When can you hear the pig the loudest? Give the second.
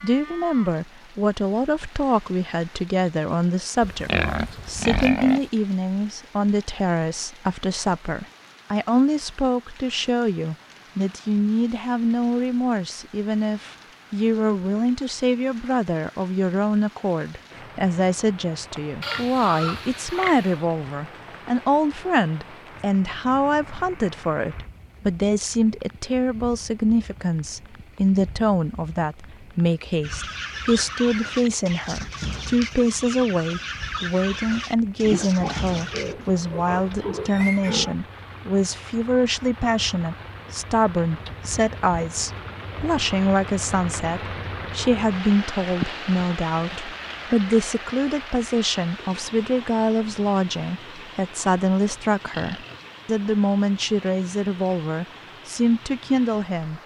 4 s.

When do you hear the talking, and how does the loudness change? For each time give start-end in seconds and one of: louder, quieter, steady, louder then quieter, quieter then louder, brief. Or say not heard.
0.0-56.8 steady.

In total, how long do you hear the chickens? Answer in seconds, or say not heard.
6 s.